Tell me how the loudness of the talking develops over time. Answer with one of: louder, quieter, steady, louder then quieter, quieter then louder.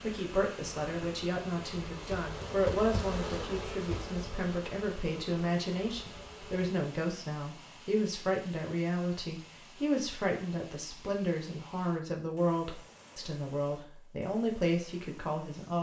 steady.